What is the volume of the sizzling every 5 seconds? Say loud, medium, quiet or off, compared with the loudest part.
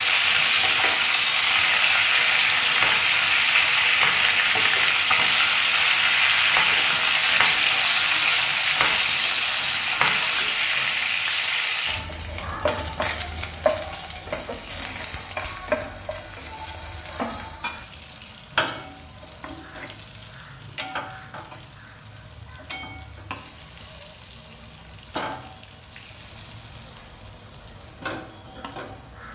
loud, loud, medium, quiet, quiet, quiet.